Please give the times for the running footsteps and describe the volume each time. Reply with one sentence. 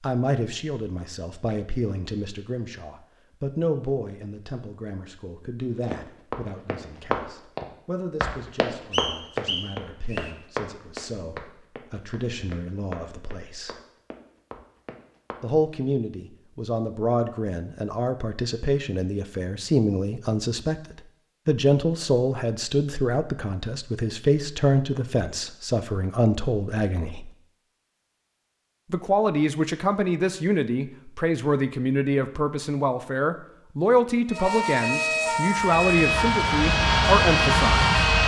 The running footsteps can be heard from 5.9 to 15.4 s, getting quieter.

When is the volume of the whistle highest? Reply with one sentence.
The loudest moment of the whistle is at 9 seconds.